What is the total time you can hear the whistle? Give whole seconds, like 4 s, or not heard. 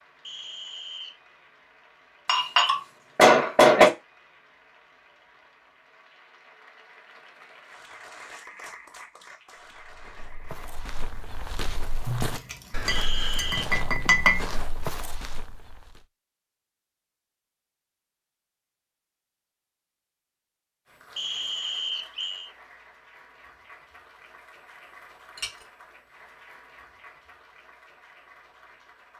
3 s.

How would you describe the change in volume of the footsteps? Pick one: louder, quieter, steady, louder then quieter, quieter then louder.
louder.